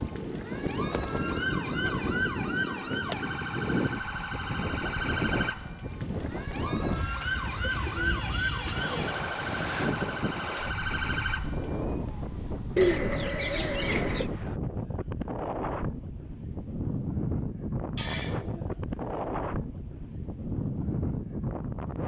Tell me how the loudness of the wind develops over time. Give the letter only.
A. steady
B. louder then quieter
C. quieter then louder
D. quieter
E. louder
A.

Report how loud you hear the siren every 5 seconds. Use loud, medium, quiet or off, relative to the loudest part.
loud, loud, loud, off, off.